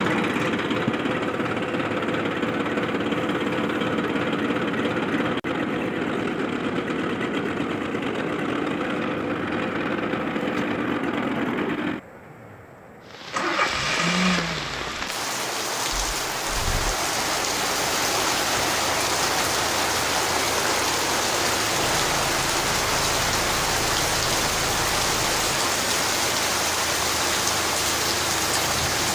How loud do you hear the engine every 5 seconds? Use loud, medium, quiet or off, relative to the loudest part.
loud, loud, loud, quiet, medium, medium.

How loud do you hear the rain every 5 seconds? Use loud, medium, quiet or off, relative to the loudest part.
off, off, medium, loud, loud, loud.